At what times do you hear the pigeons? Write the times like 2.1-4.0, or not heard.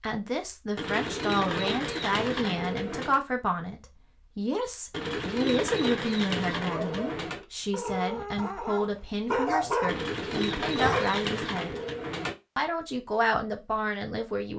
0.8-3.2, 4.9-7.5, 9.8-12.3.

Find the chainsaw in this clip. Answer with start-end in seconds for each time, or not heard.
not heard.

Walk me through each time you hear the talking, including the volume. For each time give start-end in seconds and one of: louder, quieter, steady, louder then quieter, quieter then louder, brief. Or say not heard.
0.0-11.8 steady
12.6-14.5 brief.